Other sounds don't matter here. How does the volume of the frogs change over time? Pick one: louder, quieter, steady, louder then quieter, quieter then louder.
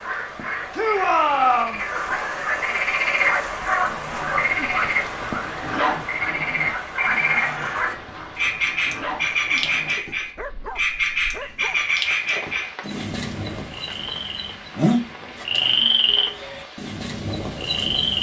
steady.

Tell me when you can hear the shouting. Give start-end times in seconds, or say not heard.
0.7-1.8.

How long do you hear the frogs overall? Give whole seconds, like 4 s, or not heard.
18 s.